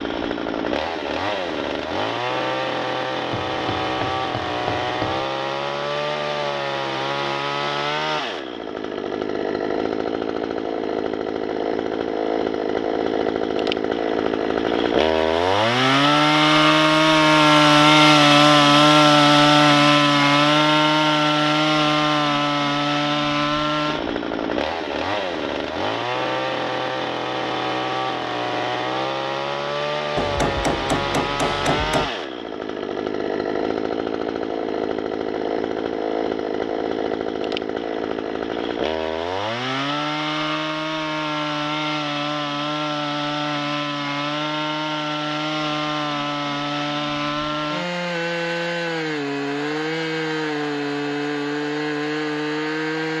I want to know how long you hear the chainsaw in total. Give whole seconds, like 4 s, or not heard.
53 s.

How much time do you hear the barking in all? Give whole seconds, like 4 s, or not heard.
not heard.